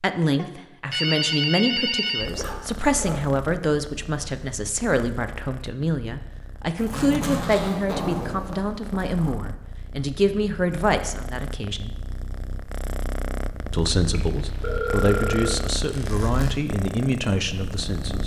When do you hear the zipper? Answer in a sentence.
You can hear the zipper from 2.2 to 3.3 s, from 6.8 to 9.3 s and from 15.8 to 16.6 s.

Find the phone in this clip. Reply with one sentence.
You can hear the phone from 0.3 to 2.3 s and from 14.1 to 15.6 s.